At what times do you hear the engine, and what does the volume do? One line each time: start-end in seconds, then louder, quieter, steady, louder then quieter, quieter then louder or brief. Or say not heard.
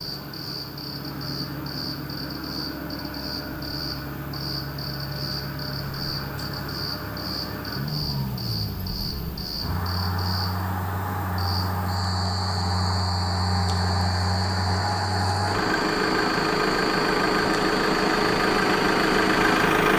0.0-19.9 louder.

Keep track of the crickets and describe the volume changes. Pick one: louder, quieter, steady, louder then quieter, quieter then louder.
steady.